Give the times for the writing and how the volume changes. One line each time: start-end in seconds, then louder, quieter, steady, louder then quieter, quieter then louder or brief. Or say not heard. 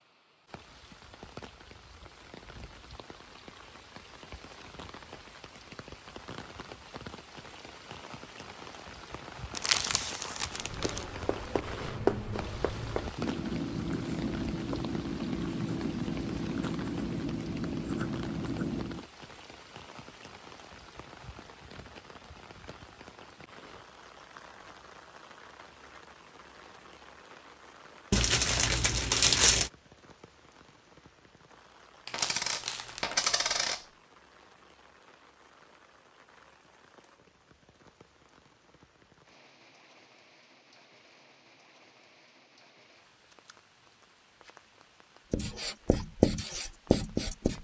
10.6-19.1 steady
45.3-47.5 brief.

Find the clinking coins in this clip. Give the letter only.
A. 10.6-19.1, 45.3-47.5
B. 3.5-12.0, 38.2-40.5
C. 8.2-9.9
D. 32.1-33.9
D.